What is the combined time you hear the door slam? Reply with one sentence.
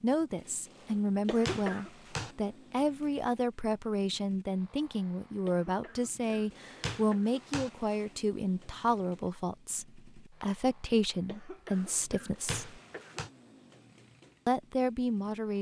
You can hear the door slam for 3 seconds altogether.